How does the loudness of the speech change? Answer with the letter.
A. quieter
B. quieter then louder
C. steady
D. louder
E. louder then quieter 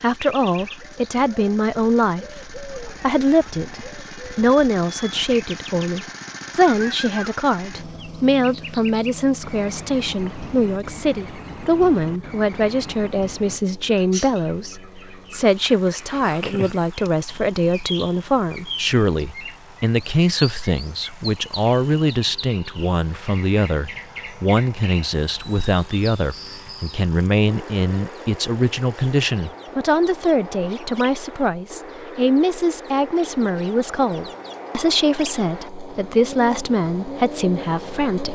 C.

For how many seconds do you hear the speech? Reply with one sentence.
You can hear the speech for 38 seconds altogether.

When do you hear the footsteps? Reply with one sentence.
You can't hear the footsteps here.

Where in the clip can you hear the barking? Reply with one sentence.
You can't hear the barking here.